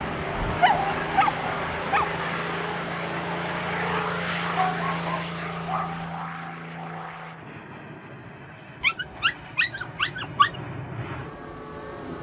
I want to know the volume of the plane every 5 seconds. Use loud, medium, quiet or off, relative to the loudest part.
loud, medium, medium.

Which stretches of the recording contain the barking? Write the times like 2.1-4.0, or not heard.
0.3-2.1, 4.5-6.0, 8.8-10.6.